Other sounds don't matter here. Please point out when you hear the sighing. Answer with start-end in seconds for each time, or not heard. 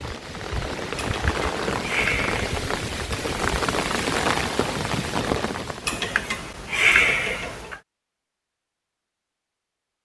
1.1-2.6, 5.8-7.8.